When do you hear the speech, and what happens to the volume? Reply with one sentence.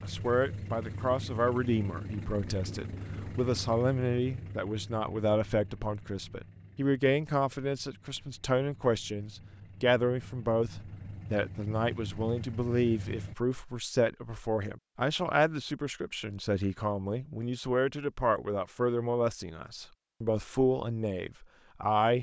The speech can be heard from 0.0 to 22.1 s, at a steady volume.